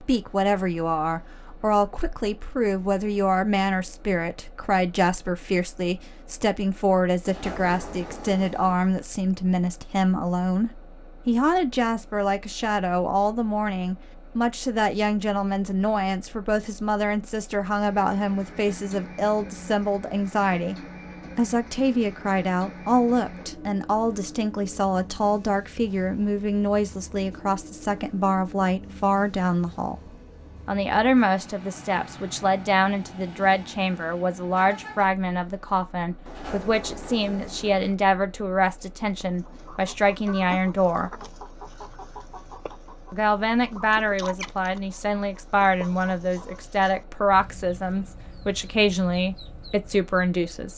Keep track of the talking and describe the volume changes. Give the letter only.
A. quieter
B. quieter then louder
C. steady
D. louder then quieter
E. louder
C.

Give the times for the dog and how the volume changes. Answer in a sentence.
The dog can't be heard in this clip.